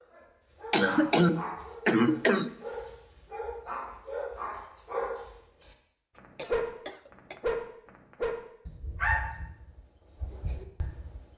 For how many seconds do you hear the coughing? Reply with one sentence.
You can hear the coughing for 3 seconds altogether.